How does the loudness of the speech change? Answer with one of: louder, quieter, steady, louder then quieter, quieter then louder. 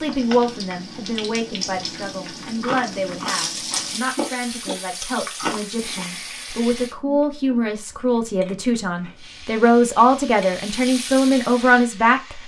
louder.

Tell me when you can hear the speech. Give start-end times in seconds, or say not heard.
0.0-12.4.